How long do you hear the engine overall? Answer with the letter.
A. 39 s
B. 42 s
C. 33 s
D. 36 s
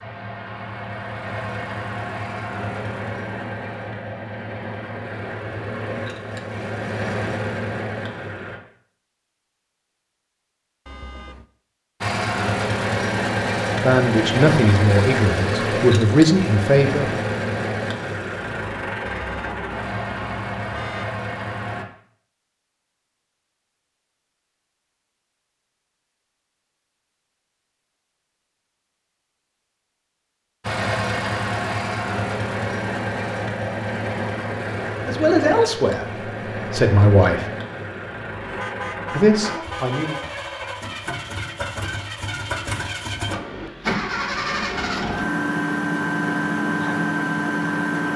D.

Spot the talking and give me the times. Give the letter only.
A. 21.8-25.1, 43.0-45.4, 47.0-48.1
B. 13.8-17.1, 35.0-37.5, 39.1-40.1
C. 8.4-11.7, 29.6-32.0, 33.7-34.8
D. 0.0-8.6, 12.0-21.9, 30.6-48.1
B.